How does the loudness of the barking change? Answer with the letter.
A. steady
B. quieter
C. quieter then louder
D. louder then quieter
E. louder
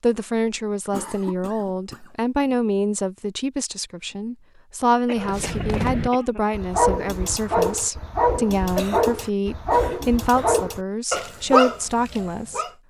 A.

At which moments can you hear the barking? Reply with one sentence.
The barking can be heard from 5.2 to 12.7 s.